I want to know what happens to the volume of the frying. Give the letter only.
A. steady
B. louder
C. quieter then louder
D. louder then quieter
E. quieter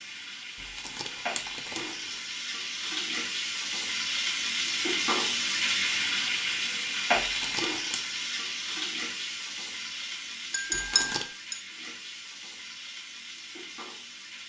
D.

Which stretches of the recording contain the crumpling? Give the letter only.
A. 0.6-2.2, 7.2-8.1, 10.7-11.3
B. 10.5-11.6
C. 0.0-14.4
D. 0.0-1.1
A.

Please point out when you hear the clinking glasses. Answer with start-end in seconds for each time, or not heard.
10.5-11.6.